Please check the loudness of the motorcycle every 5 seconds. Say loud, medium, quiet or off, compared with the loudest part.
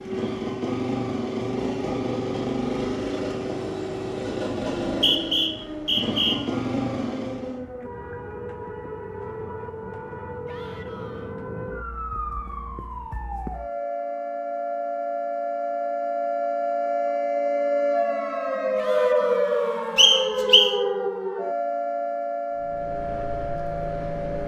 loud, loud, off, off, medium.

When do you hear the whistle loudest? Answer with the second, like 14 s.
20 s.